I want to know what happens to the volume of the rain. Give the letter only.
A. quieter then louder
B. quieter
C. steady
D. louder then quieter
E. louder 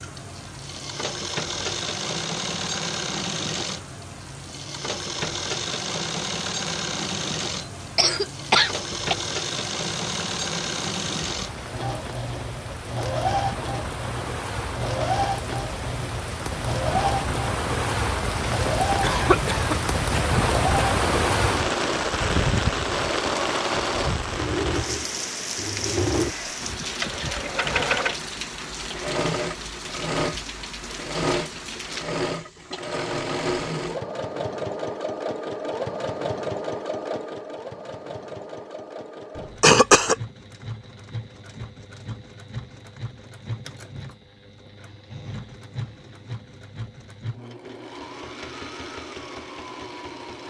D.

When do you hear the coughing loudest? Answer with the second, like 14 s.
40 s.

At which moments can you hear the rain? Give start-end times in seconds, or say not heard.
0.0-32.1.